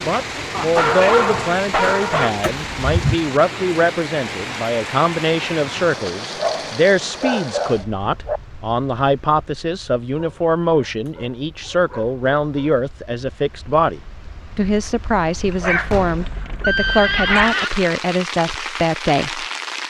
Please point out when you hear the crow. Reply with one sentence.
The crow can't be heard in this clip.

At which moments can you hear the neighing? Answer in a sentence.
The neighing can be heard from 2.4 to 3.1 s and from 15.9 to 17.7 s.